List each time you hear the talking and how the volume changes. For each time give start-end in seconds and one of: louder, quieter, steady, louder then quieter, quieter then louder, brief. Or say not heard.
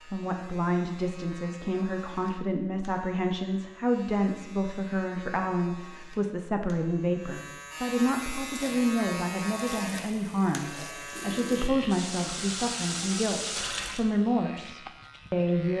0.0-15.7 steady.